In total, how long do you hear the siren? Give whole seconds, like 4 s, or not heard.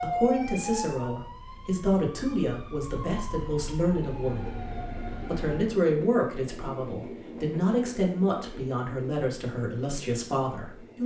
6 s.